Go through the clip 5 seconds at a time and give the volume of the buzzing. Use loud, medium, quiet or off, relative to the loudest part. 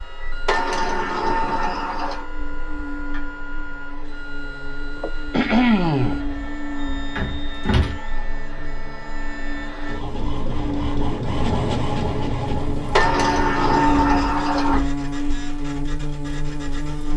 quiet, medium, loud, loud.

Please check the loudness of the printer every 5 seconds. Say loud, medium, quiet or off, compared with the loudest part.
medium, medium, loud, quiet.